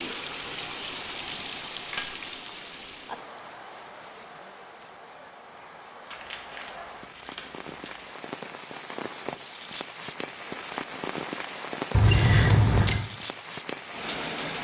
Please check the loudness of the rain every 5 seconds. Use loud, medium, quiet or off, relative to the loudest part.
loud, medium, loud.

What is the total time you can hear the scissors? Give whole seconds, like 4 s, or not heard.
4 s.